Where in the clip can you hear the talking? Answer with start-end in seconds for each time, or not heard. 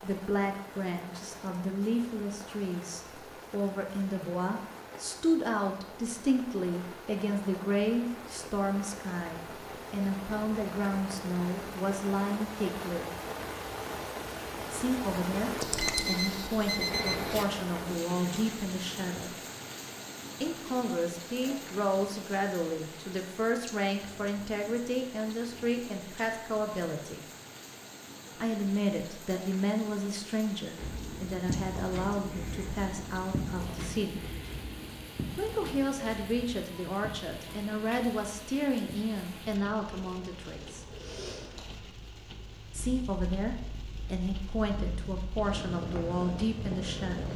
0.0-13.1, 14.7-19.4, 20.4-27.2, 28.4-34.2, 35.4-40.8, 42.7-47.3.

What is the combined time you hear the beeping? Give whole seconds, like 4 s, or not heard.
2 s.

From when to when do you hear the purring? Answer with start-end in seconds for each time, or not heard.
30.8-47.3.